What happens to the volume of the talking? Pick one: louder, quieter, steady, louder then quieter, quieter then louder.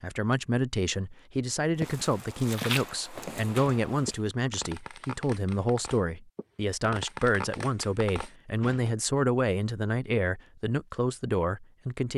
steady.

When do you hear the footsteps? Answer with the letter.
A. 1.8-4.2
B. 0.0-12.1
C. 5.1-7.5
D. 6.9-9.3
A.